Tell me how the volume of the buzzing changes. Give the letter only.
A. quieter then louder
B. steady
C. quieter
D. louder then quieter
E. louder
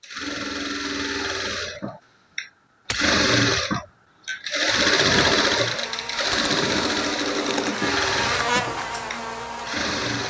D.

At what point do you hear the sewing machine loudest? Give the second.
5 s.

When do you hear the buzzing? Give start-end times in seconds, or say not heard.
4.7-10.2.